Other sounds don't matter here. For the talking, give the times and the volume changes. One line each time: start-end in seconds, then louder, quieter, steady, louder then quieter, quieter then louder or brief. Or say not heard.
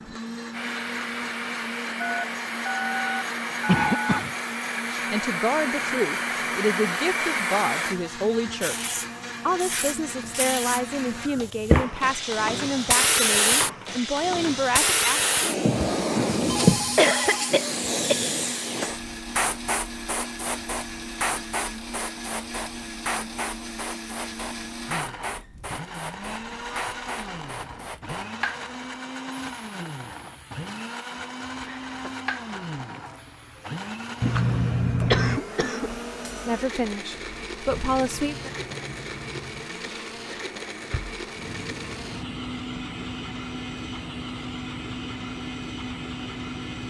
4.9-15.2 steady
36.3-38.5 brief.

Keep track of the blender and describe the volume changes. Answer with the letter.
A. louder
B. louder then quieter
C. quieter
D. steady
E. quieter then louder
D.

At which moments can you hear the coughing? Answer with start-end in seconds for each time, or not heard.
3.6-4.3, 16.9-18.1, 35.0-36.0.